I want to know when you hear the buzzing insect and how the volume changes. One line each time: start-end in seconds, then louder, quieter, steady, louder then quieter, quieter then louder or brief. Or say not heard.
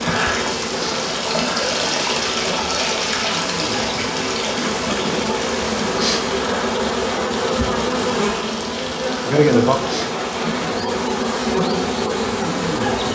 0.0-13.0 louder.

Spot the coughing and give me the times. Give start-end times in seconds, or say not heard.
not heard.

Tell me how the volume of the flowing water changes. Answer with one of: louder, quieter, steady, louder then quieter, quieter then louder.
quieter.